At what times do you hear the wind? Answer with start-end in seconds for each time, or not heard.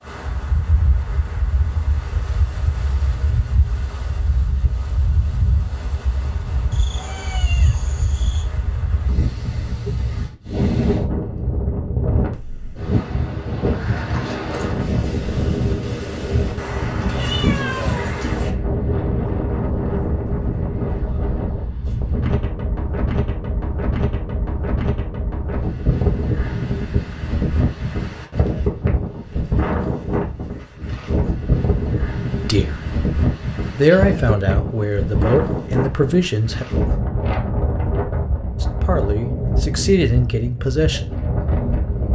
0.0-42.1.